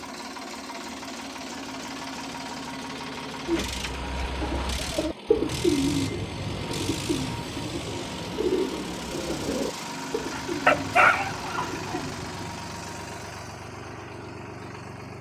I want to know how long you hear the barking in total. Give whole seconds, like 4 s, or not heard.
2 s.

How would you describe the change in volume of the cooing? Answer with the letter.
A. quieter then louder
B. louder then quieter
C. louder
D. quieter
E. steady
D.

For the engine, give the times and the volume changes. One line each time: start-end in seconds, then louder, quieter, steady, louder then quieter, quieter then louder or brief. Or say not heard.
0.0-15.1 steady.